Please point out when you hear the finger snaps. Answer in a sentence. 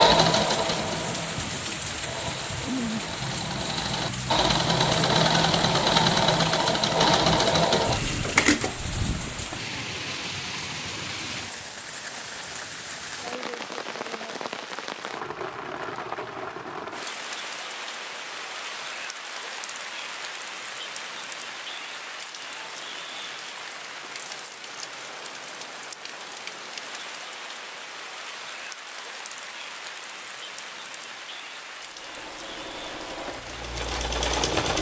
You can't hear the finger snaps here.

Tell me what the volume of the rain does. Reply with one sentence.
The volume of the rain goes down.